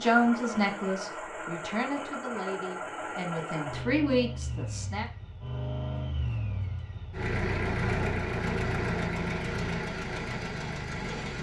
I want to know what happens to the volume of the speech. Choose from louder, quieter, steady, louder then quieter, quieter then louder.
quieter then louder.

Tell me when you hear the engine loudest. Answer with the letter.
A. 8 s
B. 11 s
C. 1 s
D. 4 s
A.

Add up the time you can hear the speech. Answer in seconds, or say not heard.
5 s.